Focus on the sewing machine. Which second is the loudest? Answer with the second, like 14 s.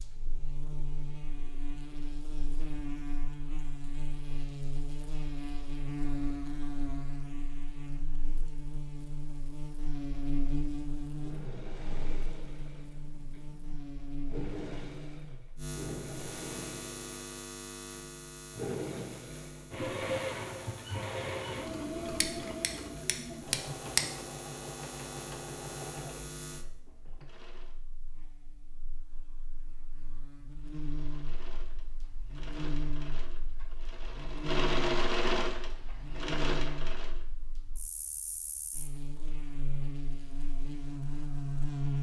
35 s.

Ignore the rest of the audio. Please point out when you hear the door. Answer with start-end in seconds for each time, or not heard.
not heard.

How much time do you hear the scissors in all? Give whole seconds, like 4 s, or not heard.
2 s.